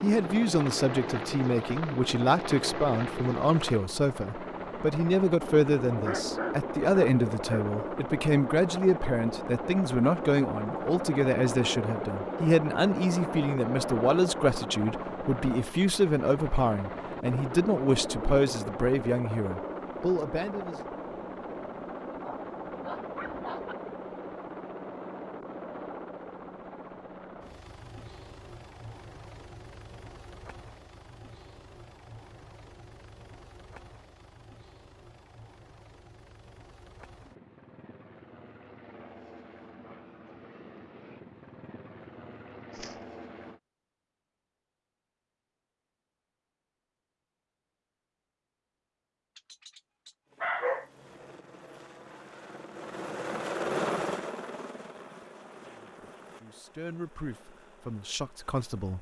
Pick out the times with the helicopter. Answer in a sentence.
The helicopter can be heard from 0.0 to 43.6 s and from 50.2 to 58.9 s.